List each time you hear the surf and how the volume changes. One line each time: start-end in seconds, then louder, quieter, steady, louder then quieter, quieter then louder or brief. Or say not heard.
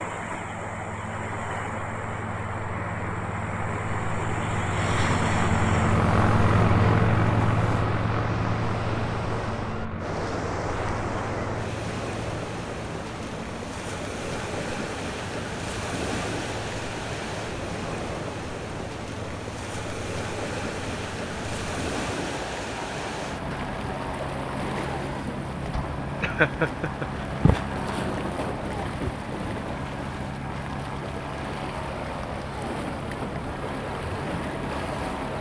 0.0-35.3 steady.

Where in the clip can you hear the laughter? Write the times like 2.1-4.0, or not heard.
26.2-27.6.